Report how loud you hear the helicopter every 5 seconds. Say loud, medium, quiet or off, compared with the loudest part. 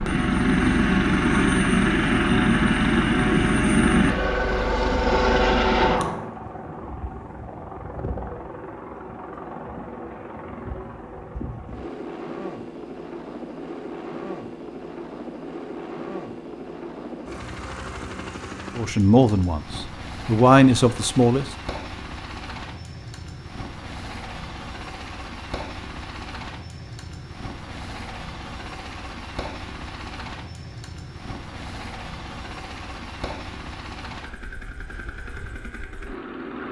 loud, medium, quiet, quiet, quiet, quiet, quiet, quiet.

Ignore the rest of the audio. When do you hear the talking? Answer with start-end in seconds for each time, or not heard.
18.8-21.4.